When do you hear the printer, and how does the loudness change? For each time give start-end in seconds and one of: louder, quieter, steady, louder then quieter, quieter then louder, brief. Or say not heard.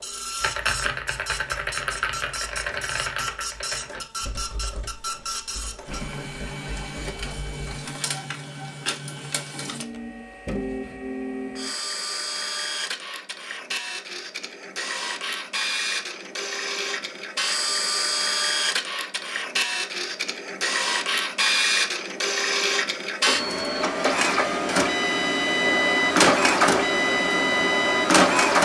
0.0-28.5 louder.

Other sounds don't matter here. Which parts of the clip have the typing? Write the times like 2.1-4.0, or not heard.
0.4-7.7.